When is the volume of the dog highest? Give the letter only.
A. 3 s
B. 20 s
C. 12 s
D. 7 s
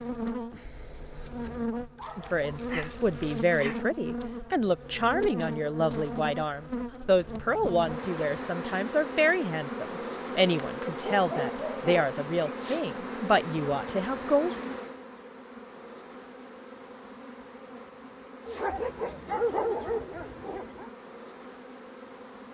B.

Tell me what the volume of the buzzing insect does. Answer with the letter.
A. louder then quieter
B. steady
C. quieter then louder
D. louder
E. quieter
E.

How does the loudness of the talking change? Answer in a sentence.
The volume of the talking stays about the same.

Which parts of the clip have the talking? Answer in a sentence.
You can hear the talking from 2.1 to 14.5 s.